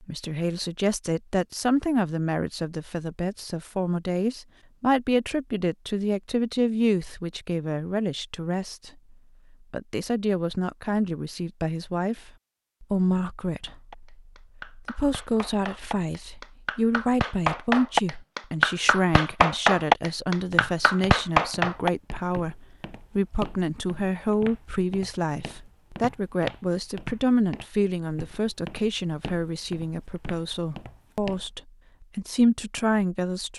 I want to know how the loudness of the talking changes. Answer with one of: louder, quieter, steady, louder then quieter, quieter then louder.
steady.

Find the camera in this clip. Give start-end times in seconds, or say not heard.
not heard.